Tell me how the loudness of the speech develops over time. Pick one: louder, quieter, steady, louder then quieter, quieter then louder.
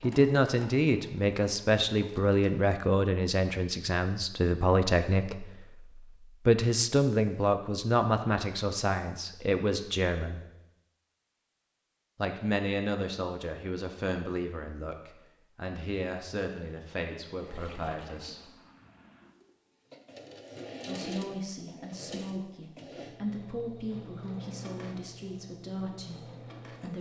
quieter.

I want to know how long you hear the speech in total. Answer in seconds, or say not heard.
23 s.